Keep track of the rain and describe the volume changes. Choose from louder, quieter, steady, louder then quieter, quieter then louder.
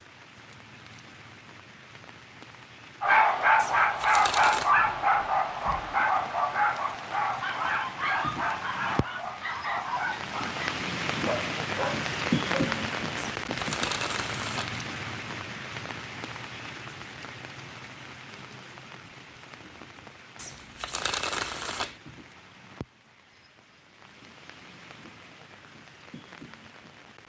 louder then quieter.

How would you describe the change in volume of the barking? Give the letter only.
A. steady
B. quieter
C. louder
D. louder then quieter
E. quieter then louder
B.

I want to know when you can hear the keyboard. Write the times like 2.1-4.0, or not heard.
not heard.